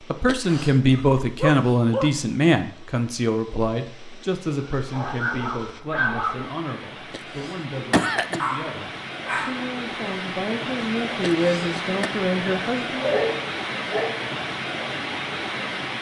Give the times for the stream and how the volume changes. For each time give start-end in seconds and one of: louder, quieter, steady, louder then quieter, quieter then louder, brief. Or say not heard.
0.0-15.9 louder.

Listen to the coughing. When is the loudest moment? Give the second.
8 s.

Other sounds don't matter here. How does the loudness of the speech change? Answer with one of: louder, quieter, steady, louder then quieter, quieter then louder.
quieter then louder.